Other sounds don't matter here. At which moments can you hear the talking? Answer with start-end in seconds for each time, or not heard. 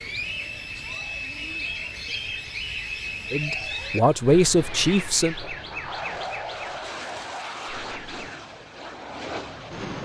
3.3-5.3.